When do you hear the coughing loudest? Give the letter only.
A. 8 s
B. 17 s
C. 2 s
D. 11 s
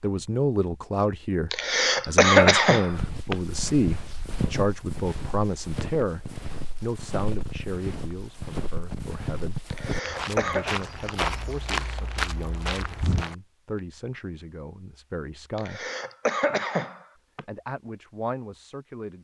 C.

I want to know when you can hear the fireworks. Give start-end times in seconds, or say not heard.
not heard.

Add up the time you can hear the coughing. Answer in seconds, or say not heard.
5 s.